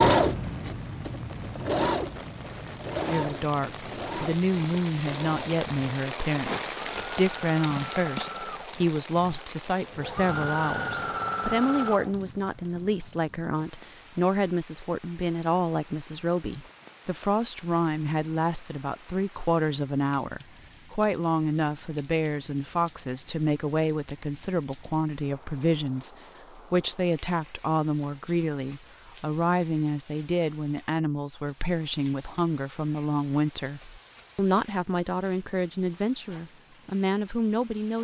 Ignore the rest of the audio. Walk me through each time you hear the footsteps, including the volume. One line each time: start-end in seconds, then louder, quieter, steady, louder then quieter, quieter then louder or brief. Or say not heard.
not heard.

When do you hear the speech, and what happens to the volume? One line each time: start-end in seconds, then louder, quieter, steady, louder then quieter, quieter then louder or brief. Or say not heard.
3.0-37.9 steady.